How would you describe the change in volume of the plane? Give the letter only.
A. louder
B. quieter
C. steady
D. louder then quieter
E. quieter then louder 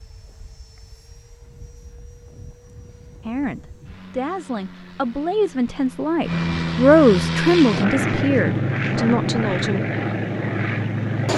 A.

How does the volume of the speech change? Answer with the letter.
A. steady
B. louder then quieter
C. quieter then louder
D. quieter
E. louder
B.